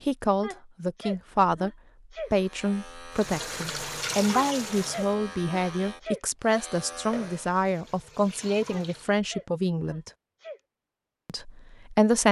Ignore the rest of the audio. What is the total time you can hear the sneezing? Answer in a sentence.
You can hear the sneezing for 6 seconds altogether.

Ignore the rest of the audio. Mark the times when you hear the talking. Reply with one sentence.
The talking can be heard from 0.1 to 1.7 s, from 2.3 to 10.1 s and from 11.2 to 12.2 s.